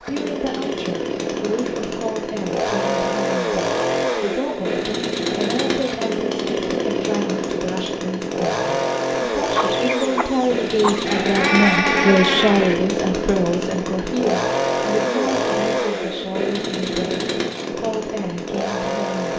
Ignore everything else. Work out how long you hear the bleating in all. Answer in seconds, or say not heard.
2 s.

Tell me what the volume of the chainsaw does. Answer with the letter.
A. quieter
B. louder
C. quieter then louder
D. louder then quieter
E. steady
E.